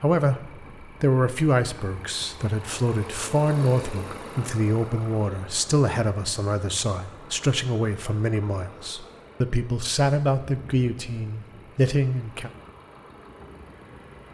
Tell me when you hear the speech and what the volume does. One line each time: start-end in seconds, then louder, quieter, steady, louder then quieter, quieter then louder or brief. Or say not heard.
0.0-12.5 steady.